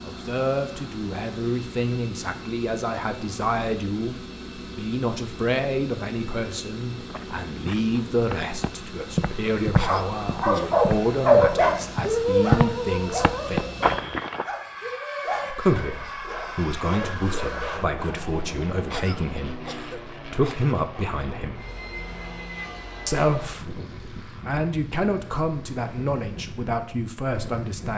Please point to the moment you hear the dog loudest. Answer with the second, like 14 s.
11 s.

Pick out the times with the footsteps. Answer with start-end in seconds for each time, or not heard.
7.0-14.4.